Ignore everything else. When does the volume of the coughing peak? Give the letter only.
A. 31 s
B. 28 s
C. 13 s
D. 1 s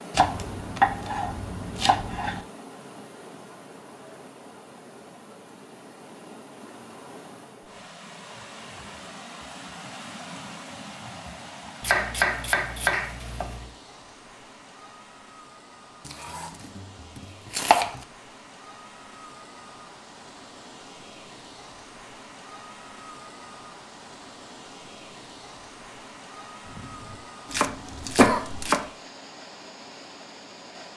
B.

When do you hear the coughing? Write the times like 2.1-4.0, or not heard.
26.6-28.6.